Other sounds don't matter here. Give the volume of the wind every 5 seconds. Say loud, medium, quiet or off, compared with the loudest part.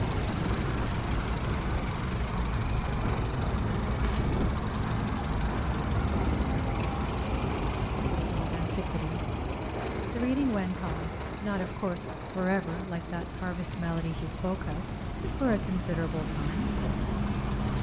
loud, loud, medium, loud.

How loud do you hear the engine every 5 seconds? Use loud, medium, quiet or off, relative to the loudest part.
loud, loud, medium, loud.